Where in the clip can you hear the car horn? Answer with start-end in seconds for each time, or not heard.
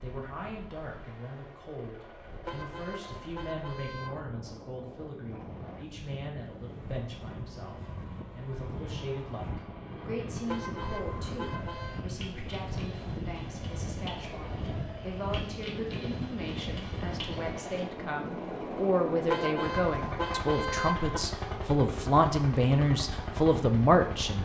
2.5-4.2, 10.4-12.0, 19.2-21.2.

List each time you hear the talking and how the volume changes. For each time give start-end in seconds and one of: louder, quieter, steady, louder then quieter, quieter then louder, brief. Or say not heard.
0.0-24.4 louder.